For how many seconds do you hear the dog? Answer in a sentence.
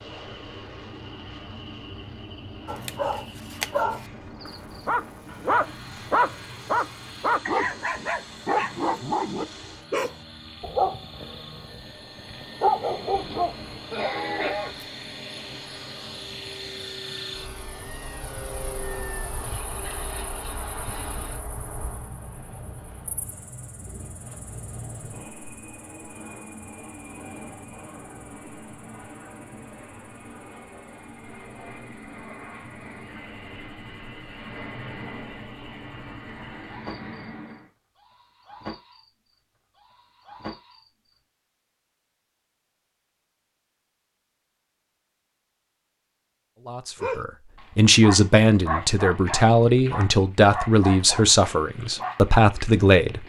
The dog can be heard for 18 seconds in total.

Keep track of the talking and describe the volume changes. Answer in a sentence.
The loudness of the talking stays about the same.